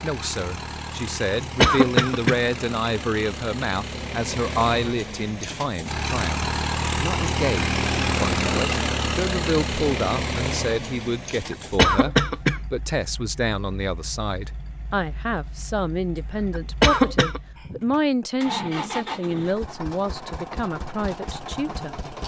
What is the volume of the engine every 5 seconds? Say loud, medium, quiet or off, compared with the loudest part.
medium, loud, medium, medium, medium.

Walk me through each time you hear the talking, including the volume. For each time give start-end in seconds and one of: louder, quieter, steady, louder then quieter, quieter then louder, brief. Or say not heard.
0.0-21.9 steady.